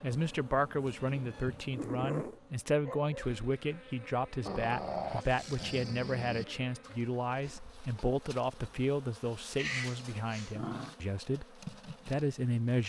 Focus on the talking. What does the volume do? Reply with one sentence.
The loudness of the talking stays about the same.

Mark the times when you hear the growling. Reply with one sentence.
The growling can be heard from 0.1 to 2.4 s, from 4.5 to 6.5 s and from 9.6 to 10.9 s.